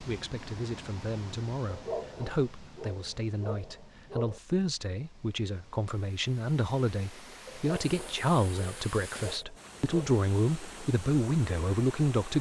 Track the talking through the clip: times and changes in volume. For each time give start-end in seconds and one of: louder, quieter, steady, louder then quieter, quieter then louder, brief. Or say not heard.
0.0-12.3 louder.